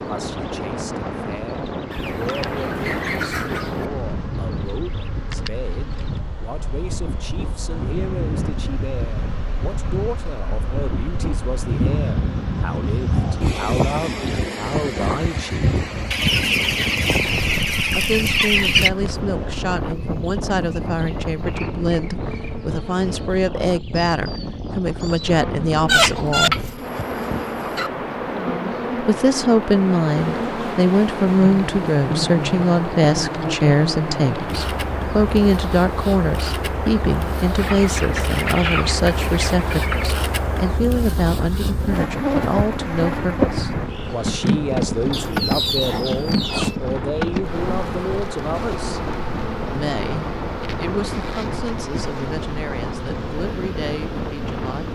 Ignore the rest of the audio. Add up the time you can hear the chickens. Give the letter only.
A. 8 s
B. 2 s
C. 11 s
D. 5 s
C.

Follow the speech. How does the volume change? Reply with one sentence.
The loudness of the speech goes up, then down.